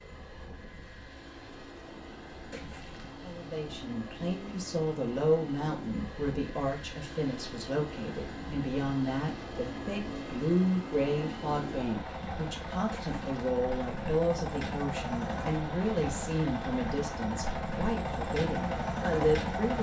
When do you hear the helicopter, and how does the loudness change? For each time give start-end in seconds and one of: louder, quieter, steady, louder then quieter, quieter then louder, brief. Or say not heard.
0.0-19.7 louder.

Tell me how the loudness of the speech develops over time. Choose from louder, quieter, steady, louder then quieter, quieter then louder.
steady.